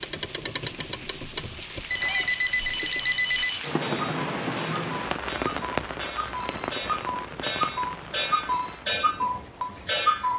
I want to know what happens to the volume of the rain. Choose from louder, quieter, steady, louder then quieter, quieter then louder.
louder then quieter.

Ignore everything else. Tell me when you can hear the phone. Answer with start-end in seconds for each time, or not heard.
1.9-3.6, 6.2-8.8.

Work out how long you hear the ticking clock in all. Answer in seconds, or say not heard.
10 s.